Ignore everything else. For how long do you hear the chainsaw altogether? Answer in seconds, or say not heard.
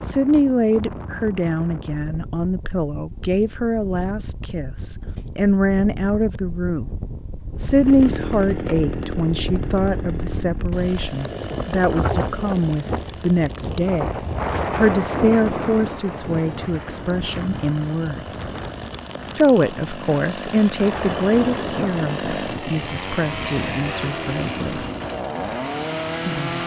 19 s.